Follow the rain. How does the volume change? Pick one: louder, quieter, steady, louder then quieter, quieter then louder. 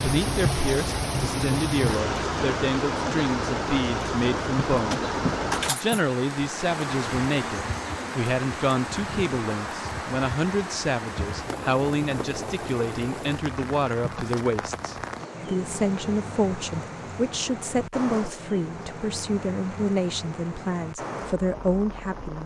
quieter.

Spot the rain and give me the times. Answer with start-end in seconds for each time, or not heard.
0.0-22.4.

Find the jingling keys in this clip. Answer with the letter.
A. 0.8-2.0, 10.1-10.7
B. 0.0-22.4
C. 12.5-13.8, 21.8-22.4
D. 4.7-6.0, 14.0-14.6
D.